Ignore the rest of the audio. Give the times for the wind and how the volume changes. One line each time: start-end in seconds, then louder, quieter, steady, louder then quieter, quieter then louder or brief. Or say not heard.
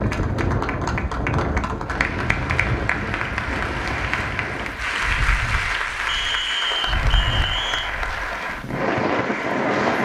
0.0-10.0 quieter then louder.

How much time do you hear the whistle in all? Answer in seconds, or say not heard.
2 s.